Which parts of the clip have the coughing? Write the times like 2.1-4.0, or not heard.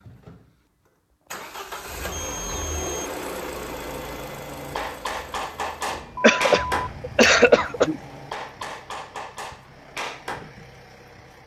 6.2-8.0.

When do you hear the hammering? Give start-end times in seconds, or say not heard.
3.9-10.6.